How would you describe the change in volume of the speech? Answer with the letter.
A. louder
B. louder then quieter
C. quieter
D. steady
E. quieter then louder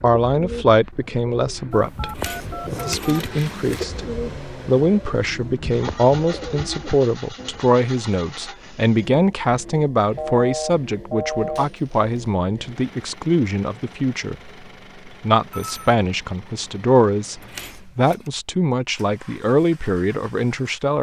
D.